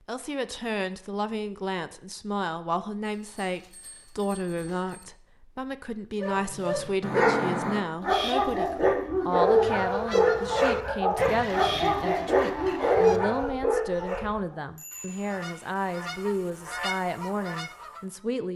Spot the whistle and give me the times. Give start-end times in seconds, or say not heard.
not heard.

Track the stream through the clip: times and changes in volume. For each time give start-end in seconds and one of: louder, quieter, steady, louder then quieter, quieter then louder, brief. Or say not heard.
not heard.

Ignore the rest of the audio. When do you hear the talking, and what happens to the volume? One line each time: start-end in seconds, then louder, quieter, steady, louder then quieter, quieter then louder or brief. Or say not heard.
0.1-18.5 steady.